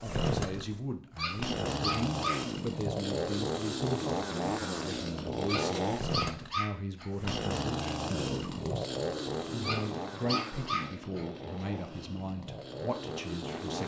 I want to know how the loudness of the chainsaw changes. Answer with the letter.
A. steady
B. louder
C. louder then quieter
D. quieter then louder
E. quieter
E.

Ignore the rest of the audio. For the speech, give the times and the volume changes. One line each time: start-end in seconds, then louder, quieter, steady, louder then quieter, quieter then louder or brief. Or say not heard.
0.0-13.8 steady.